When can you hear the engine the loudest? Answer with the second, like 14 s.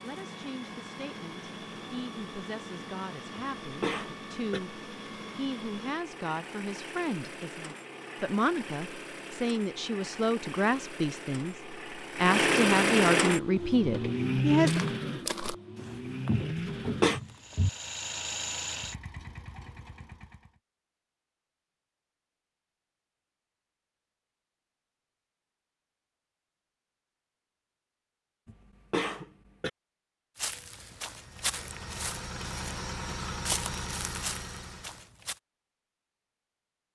13 s.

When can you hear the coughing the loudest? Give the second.
17 s.